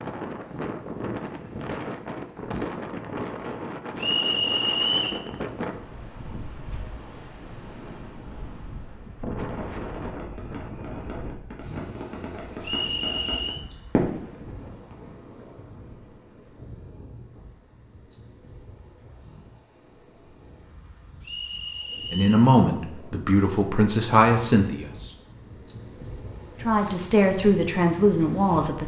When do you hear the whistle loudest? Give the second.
5 s.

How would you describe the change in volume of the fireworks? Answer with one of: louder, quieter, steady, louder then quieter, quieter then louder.
louder.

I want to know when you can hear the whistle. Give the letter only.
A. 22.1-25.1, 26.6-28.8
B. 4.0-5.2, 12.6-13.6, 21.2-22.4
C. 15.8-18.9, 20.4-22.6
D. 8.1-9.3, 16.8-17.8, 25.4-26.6
B.